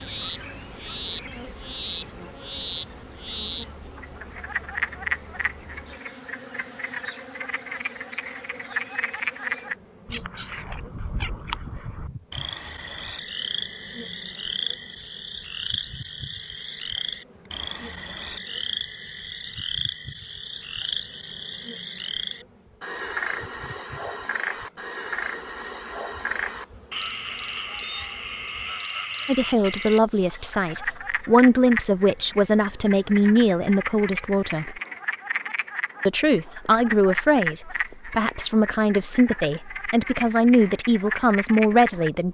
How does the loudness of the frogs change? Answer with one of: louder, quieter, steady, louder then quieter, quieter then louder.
steady.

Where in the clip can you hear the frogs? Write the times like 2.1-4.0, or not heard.
0.0-42.1.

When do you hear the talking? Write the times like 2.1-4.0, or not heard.
29.2-34.8, 36.0-42.2.